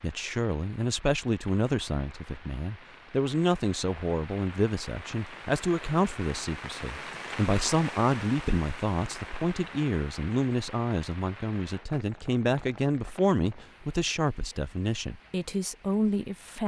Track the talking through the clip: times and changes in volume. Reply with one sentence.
The talking can be heard from 0.0 to 16.6 s, at a steady volume.